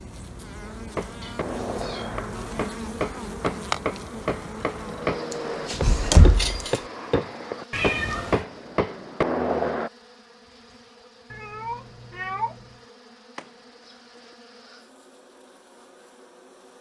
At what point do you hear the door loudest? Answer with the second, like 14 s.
6 s.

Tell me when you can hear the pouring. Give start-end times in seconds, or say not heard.
not heard.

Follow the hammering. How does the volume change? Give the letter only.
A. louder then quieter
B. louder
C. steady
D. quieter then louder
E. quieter
B.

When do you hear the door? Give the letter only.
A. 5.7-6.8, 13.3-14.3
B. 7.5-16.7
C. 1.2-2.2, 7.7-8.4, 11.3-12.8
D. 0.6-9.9
A.